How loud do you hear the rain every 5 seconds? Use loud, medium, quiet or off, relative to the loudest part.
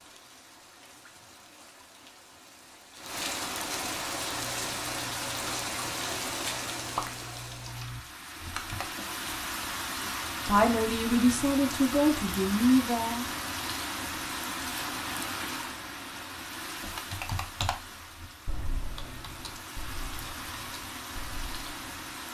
loud, loud, loud, medium, medium.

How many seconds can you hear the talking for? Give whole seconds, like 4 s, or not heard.
3 s.